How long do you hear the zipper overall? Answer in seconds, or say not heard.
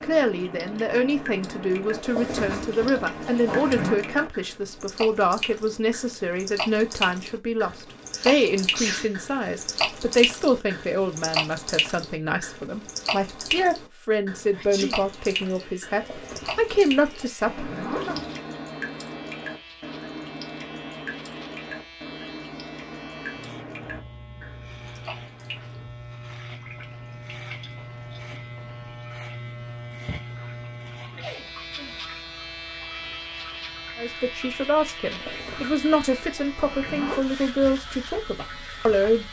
7 s.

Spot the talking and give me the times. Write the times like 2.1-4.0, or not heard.
0.0-18.1, 34.0-39.2.